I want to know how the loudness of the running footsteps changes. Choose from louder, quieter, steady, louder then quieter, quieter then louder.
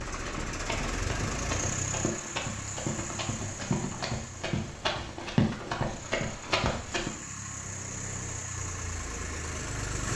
louder.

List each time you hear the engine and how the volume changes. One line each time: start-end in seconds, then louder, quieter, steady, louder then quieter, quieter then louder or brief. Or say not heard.
0.0-10.1 quieter then louder.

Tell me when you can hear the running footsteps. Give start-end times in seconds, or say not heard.
0.1-7.1.